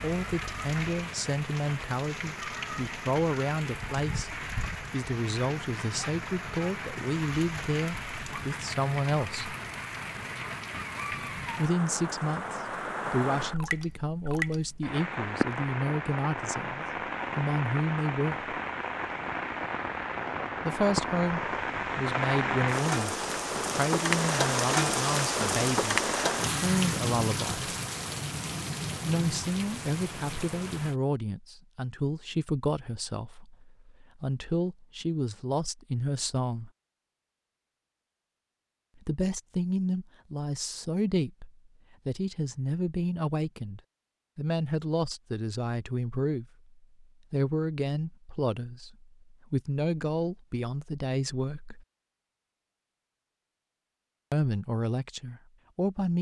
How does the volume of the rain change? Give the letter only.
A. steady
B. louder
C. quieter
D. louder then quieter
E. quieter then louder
B.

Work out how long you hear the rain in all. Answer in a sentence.
The rain can be heard for 31 seconds in total.